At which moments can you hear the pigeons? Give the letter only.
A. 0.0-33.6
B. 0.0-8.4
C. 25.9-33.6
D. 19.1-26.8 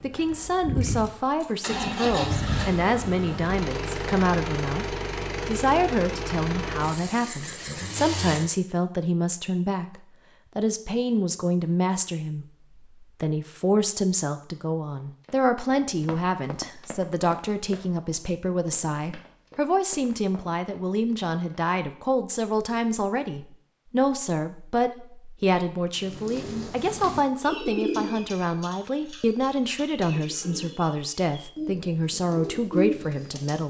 C.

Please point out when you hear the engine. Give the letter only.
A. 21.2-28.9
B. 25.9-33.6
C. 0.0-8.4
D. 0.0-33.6
C.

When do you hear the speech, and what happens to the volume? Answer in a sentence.
The speech can be heard from 0.0 to 33.6 s, at a steady volume.